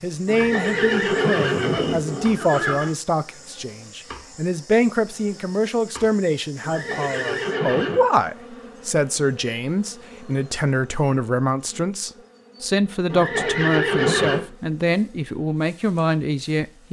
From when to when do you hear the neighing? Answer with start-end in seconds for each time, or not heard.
0.2-2.9, 6.6-8.0, 13.1-14.4.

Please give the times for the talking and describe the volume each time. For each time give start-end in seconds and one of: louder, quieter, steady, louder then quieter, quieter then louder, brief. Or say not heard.
0.0-16.8 steady.